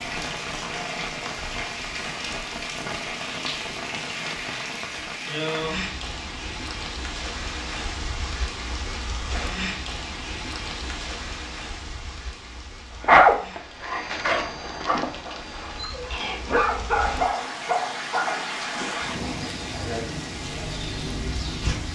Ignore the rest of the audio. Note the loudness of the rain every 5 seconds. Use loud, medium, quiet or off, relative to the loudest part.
loud, loud, medium, loud, loud.